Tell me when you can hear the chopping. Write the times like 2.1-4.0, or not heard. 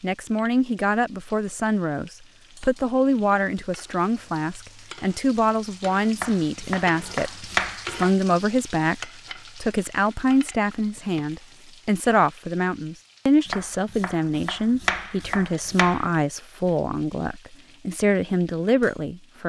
6.2-8.1, 13.4-16.1.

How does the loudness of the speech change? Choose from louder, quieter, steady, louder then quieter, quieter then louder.
steady.